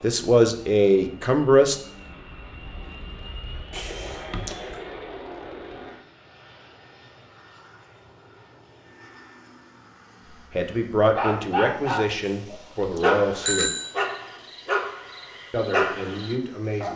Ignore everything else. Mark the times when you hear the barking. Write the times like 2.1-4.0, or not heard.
11.1-16.9.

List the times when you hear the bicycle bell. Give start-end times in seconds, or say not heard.
3.7-4.8, 12.2-13.9.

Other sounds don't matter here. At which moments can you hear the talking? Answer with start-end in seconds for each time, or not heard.
0.0-1.8, 10.5-13.8, 15.5-16.9.